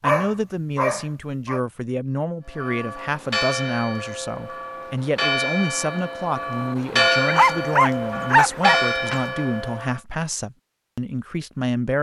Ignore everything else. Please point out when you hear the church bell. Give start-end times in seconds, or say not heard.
2.5-10.0.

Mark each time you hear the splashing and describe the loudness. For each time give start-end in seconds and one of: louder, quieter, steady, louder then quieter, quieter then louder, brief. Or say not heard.
not heard.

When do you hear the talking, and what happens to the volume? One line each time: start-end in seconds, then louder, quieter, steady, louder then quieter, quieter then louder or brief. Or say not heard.
0.0-11.9 steady.